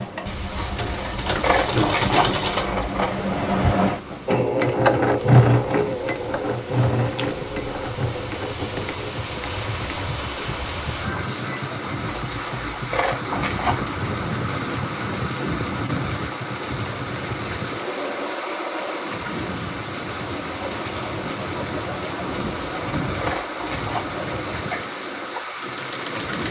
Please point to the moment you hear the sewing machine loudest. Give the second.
5 s.